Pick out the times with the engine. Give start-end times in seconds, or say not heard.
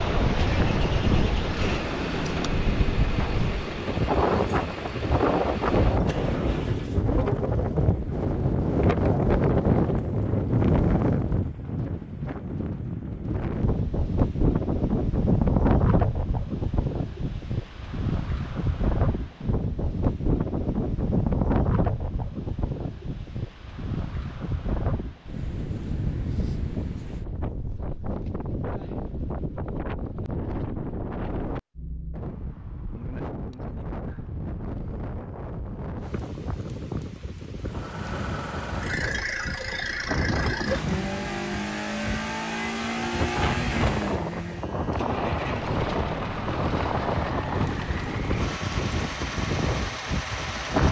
0.2-7.0, 37.6-50.8.